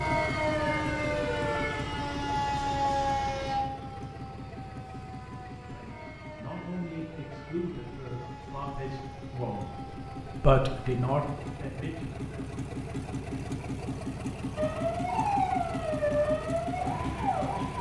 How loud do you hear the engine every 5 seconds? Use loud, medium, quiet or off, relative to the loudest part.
loud, medium, loud, loud.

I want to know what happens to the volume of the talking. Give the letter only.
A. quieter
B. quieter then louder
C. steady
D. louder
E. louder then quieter
E.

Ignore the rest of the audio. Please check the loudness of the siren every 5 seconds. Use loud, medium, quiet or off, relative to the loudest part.
loud, quiet, medium, loud.